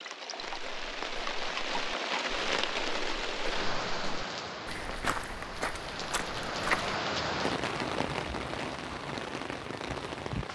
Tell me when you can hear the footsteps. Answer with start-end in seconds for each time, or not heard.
0.4-7.0.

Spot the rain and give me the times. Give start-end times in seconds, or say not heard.
0.0-10.4.